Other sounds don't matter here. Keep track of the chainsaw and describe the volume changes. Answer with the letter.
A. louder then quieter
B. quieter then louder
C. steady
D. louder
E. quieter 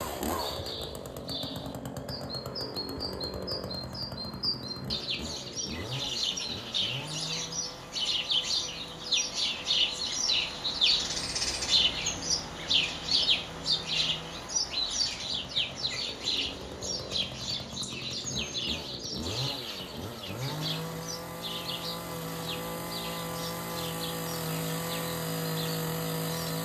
B.